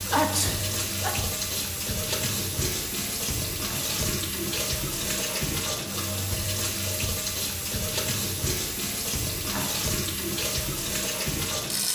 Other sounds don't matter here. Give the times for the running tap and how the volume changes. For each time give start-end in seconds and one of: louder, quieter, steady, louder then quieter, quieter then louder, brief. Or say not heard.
0.0-11.9 steady.